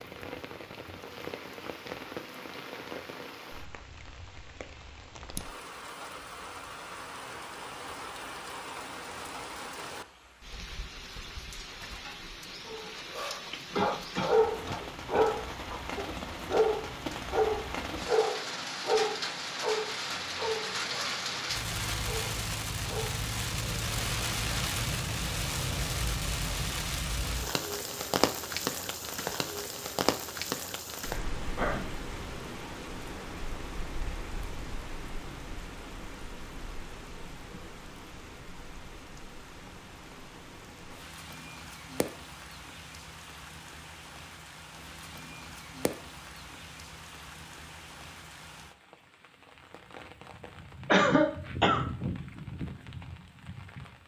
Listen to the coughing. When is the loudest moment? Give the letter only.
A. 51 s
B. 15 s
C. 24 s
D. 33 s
A.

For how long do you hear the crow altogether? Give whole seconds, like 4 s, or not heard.
not heard.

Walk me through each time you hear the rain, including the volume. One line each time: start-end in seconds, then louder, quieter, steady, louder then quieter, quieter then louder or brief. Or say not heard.
0.0-54.0 louder then quieter.